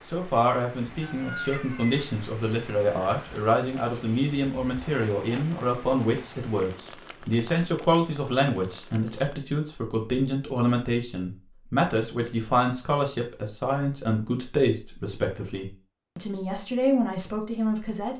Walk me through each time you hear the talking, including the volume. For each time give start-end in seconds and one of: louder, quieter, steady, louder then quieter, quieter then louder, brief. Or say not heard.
0.0-18.1 steady.